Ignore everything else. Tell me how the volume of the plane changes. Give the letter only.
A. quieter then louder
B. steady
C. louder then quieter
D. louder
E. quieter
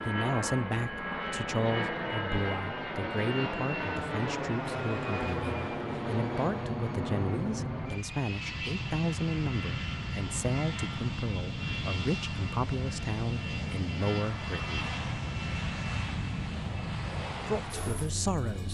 B.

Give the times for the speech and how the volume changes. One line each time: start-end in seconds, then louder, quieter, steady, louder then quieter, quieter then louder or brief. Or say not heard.
0.1-14.9 steady
17.4-18.6 brief.